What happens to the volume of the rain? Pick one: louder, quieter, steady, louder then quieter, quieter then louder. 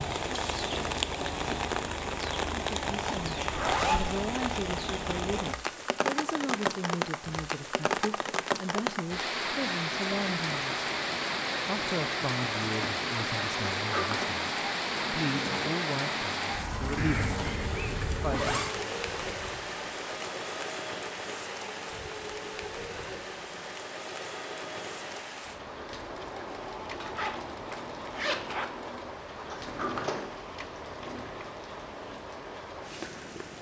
quieter.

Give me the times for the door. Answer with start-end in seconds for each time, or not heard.
13.8-14.3, 29.4-30.2.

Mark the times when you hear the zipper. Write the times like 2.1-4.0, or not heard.
3.5-4.1, 16.9-18.7, 27.0-28.6.